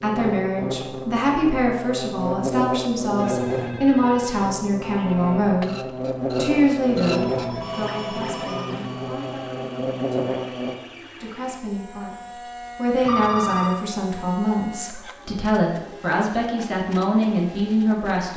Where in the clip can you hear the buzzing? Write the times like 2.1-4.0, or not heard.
0.0-10.8.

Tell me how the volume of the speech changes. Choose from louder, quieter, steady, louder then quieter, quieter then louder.
quieter then louder.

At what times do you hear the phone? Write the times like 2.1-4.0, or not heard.
3.1-4.5, 7.1-9.2, 13.0-13.9.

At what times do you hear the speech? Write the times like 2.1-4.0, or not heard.
0.0-5.7, 6.3-12.2, 12.8-18.3.